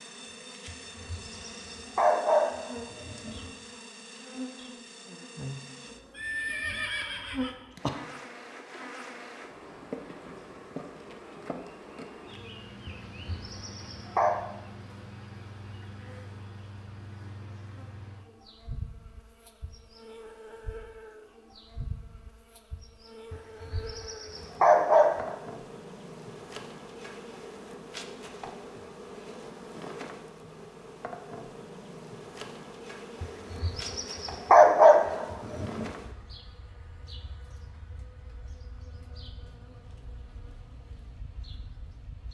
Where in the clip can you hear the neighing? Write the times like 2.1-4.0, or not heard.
6.2-7.9.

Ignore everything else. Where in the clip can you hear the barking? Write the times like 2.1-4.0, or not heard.
0.7-3.5, 12.8-14.3, 23.3-25.4, 33.2-35.9.